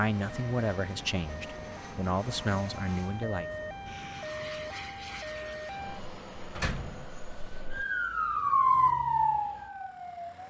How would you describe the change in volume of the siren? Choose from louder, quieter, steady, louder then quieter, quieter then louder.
louder.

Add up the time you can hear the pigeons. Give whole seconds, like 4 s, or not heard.
not heard.